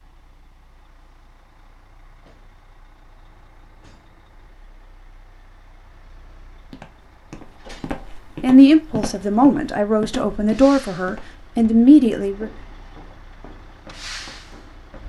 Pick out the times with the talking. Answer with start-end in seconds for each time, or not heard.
8.4-12.6.